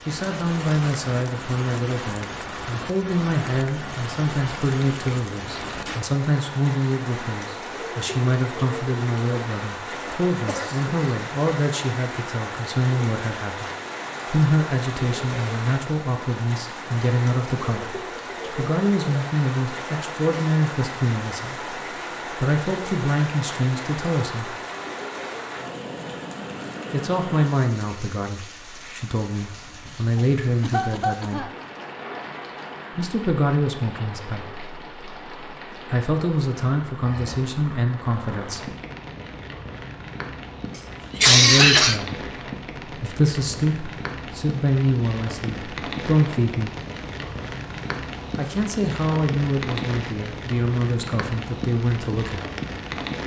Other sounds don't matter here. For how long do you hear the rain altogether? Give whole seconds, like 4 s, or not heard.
53 s.